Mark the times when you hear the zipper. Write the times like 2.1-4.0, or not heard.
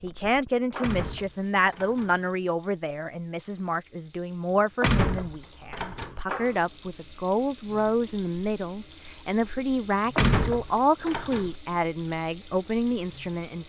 not heard.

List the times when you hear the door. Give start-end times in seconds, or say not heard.
0.8-2.1, 4.8-6.2, 10.2-11.5.